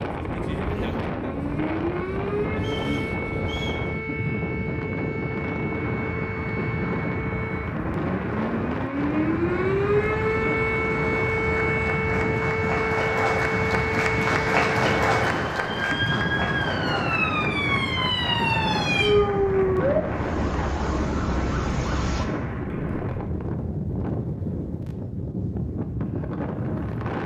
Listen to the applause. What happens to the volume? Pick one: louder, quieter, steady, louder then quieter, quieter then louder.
louder then quieter.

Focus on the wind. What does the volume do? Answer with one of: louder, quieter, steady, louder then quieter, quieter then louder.
steady.